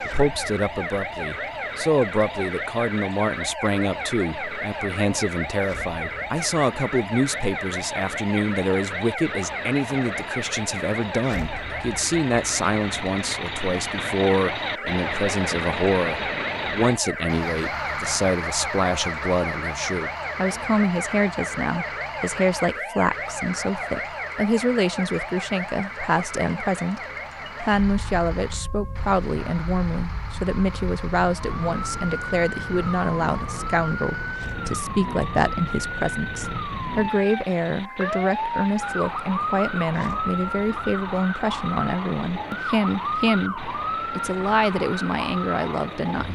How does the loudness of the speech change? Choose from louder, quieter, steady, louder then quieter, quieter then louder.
steady.